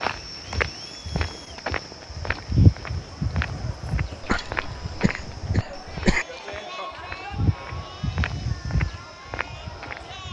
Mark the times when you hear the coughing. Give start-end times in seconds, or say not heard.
4.2-6.2.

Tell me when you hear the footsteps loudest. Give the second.
3 s.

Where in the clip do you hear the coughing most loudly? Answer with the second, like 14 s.
6 s.